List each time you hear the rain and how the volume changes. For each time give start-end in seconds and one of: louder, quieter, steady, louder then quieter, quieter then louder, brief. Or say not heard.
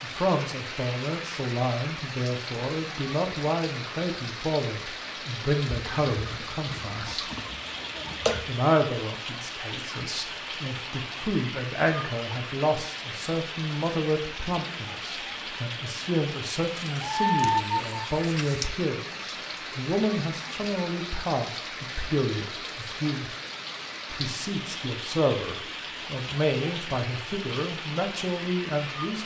0.0-29.2 steady.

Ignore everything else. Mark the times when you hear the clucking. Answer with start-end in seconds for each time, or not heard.
5.7-8.4, 16.8-18.7.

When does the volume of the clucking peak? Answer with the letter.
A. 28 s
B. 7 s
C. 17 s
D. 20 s
C.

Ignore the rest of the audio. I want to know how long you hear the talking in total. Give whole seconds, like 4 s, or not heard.
27 s.